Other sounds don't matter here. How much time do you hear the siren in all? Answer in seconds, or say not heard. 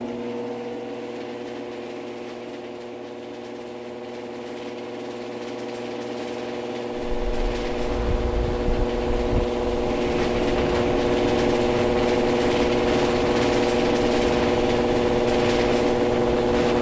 not heard.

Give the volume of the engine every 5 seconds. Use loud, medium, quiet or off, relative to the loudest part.
quiet, medium, loud, loud.